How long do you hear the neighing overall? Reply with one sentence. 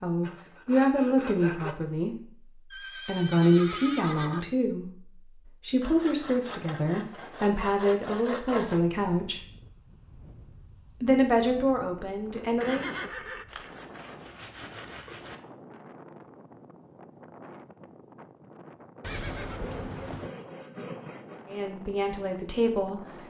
You can hear the neighing for 4 seconds altogether.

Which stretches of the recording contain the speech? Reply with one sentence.
The speech can be heard from 0.0 to 9.4 s, from 11.0 to 12.9 s and from 21.5 to 23.0 s.